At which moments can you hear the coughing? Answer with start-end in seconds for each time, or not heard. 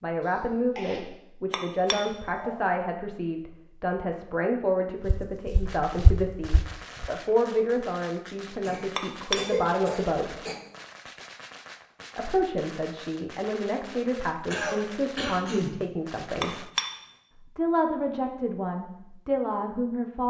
0.2-1.0, 8.7-10.6, 14.5-15.8.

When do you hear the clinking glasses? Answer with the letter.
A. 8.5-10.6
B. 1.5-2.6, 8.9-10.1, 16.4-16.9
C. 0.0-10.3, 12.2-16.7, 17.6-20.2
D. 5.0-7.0
B.